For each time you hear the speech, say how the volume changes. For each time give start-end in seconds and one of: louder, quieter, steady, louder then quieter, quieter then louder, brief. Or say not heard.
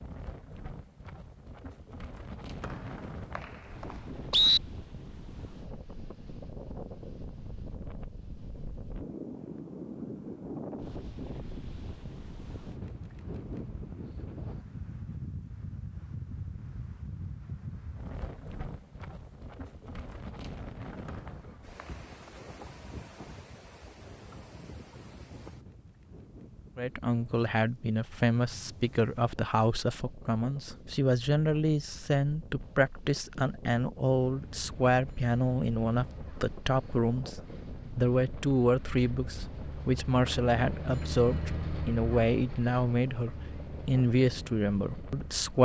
26.8-45.6 steady.